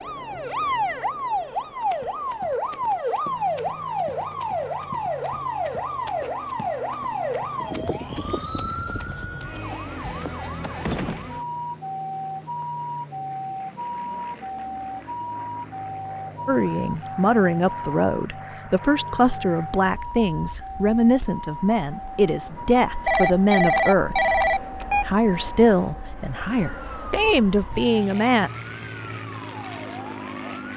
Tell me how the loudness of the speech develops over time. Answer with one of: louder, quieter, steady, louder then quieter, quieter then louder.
steady.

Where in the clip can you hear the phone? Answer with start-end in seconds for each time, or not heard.
23.1-25.1.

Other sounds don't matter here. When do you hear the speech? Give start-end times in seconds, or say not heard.
16.4-24.3, 25.1-28.5.